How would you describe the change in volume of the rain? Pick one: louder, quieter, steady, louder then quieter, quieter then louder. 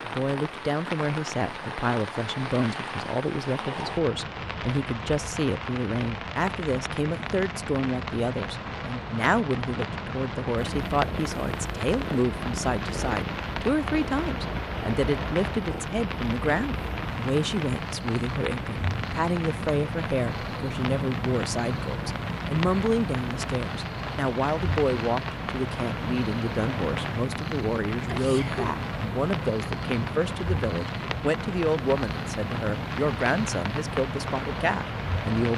steady.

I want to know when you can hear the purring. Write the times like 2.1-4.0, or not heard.
10.6-35.5.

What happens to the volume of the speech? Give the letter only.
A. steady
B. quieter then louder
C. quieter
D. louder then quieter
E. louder
A.